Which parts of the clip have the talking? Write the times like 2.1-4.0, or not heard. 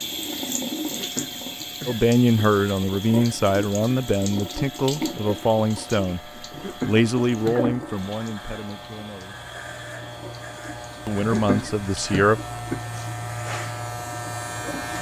1.9-9.4, 11.1-12.4.